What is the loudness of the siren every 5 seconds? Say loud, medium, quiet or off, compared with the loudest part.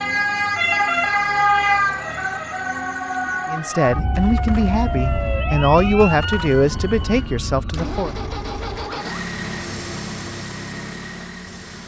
loud, medium, off.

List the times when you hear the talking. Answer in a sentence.
The talking can be heard from 3.5 to 8.1 s.